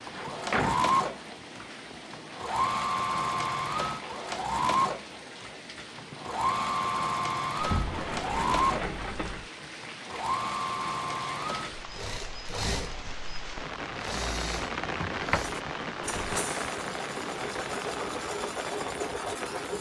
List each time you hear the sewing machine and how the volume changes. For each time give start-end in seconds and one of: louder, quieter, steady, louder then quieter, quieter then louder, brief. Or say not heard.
0.1-19.7 quieter.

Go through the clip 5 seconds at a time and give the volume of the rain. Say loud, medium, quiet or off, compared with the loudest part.
medium, medium, loud, loud.